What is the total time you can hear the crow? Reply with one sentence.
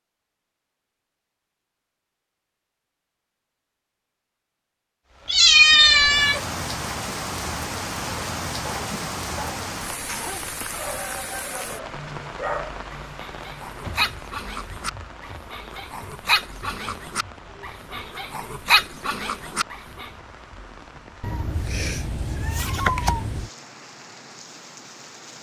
The crow can't be heard in this clip.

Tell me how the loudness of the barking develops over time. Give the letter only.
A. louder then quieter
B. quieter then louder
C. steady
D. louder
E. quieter
D.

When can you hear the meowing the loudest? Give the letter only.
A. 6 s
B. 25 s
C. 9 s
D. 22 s
A.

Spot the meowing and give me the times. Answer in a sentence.
You can hear the meowing from 5.2 to 6.4 s and from 21.2 to 23.5 s.